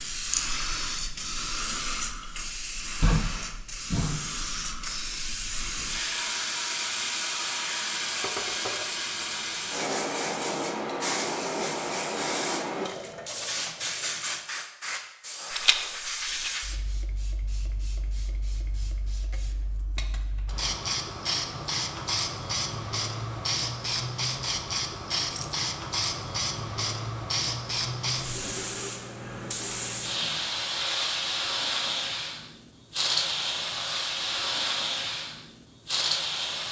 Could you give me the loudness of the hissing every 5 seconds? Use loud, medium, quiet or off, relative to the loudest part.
loud, loud, loud, medium, loud, loud, loud, loud.